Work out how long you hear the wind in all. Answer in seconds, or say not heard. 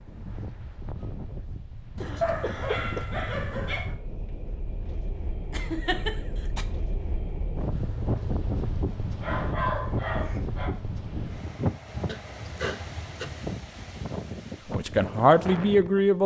16 s.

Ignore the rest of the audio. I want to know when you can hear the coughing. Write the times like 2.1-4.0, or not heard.
1.9-3.0, 5.5-6.7, 12.1-13.2.